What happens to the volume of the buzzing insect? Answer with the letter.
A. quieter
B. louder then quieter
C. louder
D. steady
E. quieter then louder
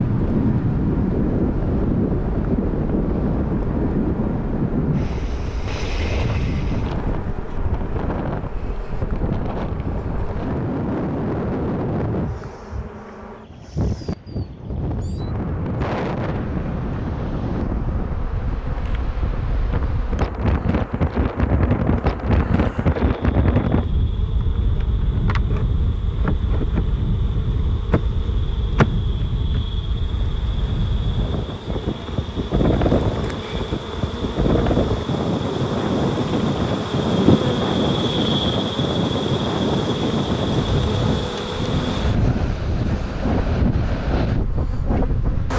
C.